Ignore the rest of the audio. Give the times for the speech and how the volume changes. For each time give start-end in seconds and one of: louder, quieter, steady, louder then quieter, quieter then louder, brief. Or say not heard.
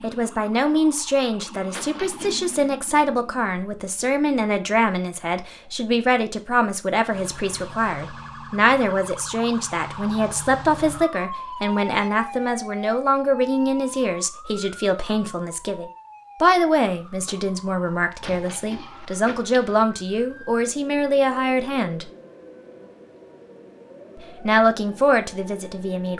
0.0-22.1 steady
24.4-26.1 brief.